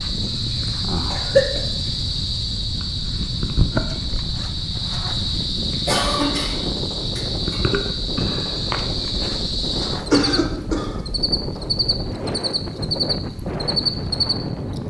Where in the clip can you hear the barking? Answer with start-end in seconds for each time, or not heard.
not heard.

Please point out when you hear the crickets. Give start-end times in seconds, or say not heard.
0.0-14.8.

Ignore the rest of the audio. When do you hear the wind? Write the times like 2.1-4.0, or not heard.
0.0-14.8.